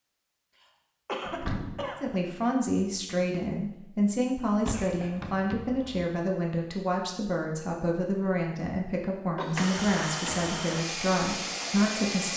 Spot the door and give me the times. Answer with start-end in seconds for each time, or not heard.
1.2-1.9, 4.6-6.0, 9.6-10.6.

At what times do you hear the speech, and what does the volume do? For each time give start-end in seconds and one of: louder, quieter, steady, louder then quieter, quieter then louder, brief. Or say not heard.
2.0-12.3 steady.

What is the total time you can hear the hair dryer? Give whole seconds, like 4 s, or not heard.
3 s.